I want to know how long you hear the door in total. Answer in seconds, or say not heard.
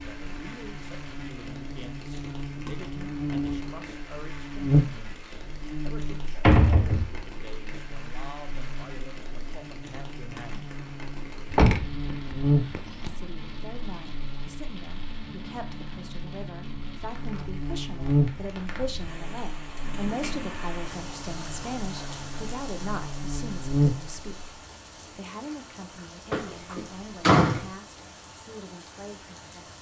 4 s.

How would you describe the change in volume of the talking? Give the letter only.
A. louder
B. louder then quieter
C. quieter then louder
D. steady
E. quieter
B.